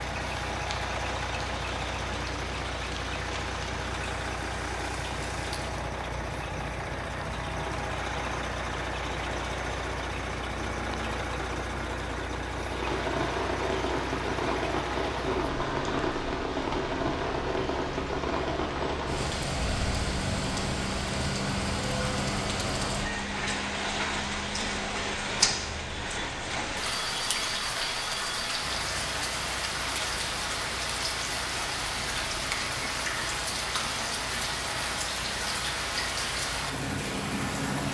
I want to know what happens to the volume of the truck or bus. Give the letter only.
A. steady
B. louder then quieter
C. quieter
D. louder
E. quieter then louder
C.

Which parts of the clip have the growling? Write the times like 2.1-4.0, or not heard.
not heard.